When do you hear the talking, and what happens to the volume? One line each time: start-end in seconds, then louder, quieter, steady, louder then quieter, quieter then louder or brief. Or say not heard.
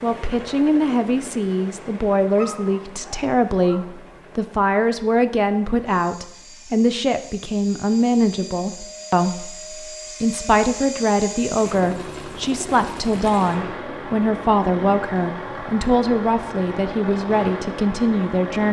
0.0-18.6 steady.